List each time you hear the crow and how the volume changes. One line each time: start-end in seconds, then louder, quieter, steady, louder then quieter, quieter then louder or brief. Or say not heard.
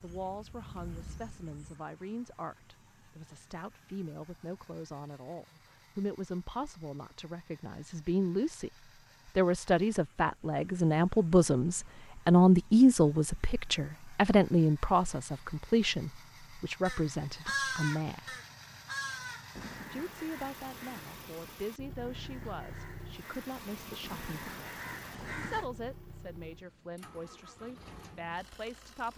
0.0-1.8 brief
16.9-25.7 quieter then louder.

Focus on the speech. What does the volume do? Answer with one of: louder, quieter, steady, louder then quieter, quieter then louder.
louder then quieter.